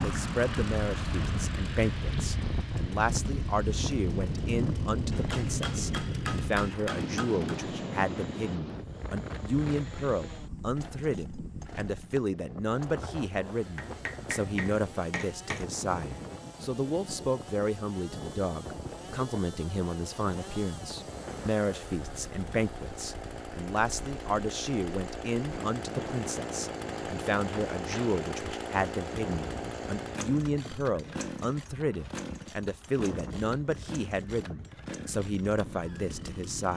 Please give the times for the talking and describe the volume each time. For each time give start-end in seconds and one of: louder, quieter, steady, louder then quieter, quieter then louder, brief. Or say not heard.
0.0-36.7 steady.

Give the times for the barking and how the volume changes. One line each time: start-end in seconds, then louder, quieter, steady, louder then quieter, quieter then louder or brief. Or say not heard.
not heard.